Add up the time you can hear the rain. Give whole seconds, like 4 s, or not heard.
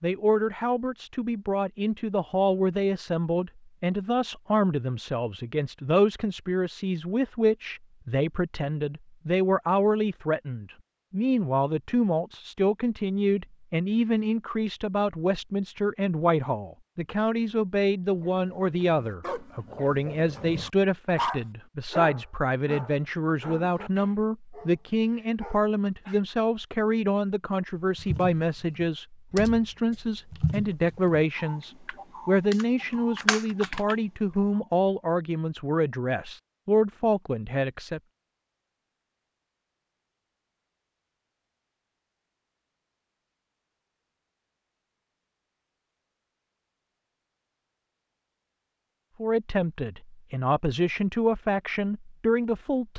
not heard.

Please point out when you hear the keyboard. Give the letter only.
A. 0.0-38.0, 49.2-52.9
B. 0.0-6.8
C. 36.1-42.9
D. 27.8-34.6
D.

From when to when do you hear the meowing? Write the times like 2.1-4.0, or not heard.
not heard.